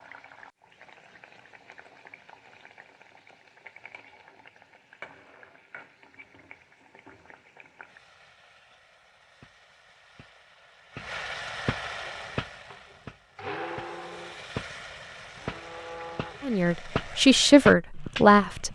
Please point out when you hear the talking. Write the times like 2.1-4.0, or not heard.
16.4-18.7.